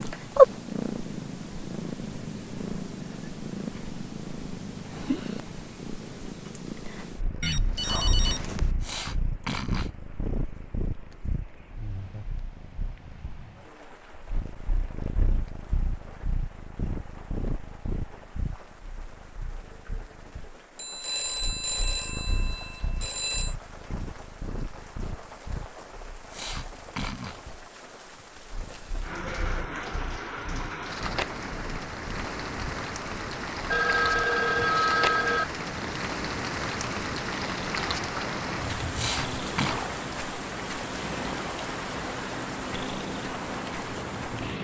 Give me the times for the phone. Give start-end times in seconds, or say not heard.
7.4-8.8, 20.8-23.6, 33.7-35.5.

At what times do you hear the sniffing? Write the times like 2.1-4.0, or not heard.
8.8-9.9, 26.3-27.4, 38.9-39.8.